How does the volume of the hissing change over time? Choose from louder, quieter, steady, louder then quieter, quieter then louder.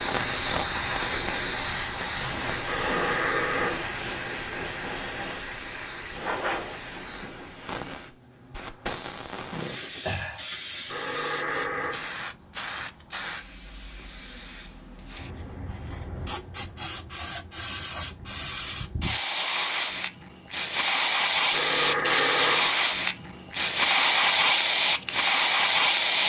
quieter then louder.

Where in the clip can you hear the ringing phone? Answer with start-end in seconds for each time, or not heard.
2.6-3.9, 10.8-12.1, 21.5-22.7.